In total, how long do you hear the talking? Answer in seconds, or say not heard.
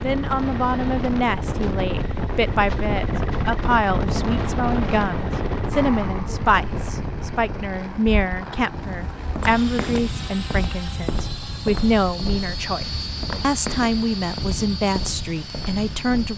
16 s.